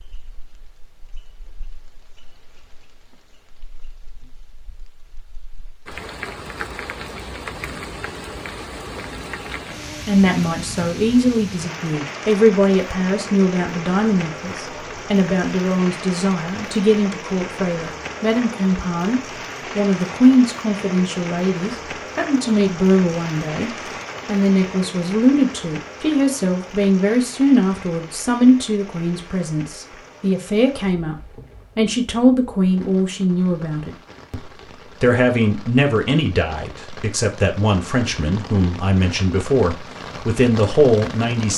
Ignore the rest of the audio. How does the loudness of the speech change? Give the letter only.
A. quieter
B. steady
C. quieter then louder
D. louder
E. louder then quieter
B.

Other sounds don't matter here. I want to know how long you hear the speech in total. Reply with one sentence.
The speech can be heard for 31 seconds in total.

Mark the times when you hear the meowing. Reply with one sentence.
The meowing can't be heard in this clip.